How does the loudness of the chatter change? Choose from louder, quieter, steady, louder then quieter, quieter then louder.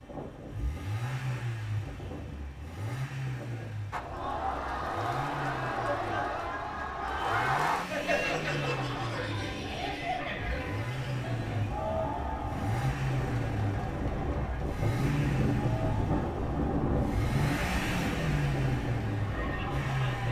quieter.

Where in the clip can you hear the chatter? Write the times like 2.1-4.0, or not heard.
3.9-20.2.